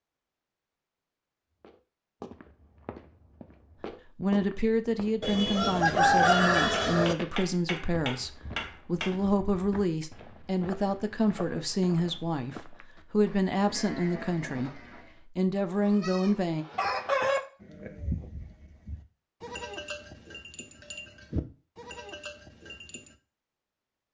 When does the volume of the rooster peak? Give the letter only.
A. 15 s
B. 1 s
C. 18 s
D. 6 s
D.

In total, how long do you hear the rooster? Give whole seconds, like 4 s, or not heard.
3 s.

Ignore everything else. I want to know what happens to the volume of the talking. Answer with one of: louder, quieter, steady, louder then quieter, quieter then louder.
steady.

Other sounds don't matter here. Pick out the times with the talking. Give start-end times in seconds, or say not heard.
4.2-16.6.